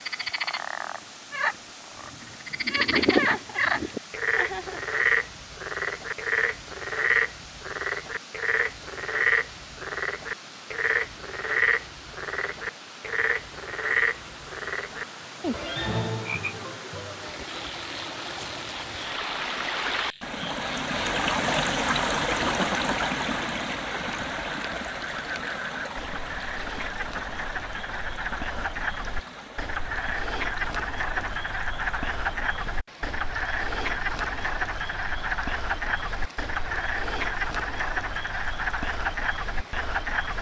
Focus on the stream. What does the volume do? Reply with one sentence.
The loudness of the stream goes up, then down.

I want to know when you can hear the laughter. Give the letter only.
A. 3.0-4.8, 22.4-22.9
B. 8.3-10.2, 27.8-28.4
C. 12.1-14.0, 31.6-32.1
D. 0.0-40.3
A.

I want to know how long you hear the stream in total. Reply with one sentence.
You can hear the stream for 40 seconds altogether.